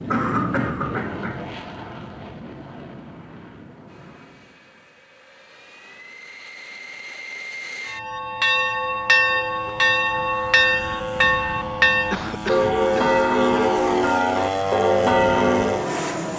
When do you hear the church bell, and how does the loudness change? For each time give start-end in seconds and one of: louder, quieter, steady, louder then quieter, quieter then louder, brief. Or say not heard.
7.8-16.1 steady.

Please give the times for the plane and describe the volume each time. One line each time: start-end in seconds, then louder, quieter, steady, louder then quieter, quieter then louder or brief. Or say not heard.
0.0-16.3 quieter then louder.